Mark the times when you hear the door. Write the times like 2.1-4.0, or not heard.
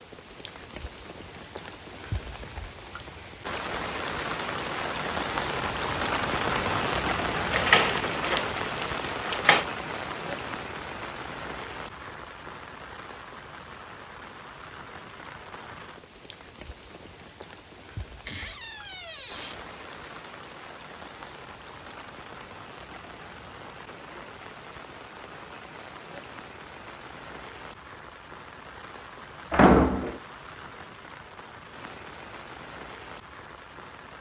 7.5-9.7, 18.2-19.6, 29.5-30.2.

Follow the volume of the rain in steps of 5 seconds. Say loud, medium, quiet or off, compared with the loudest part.
medium, loud, medium, quiet, quiet, quiet, quiet.